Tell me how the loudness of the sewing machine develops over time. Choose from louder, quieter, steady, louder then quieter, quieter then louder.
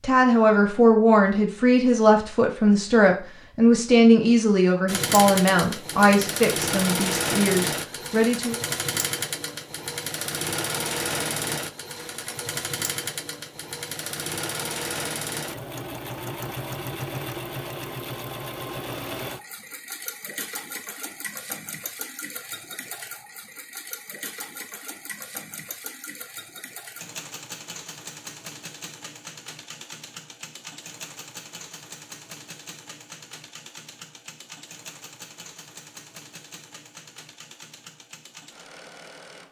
quieter.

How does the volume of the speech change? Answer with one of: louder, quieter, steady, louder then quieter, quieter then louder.
quieter.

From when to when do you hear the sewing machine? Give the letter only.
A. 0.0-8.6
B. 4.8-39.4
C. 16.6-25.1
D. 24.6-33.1
B.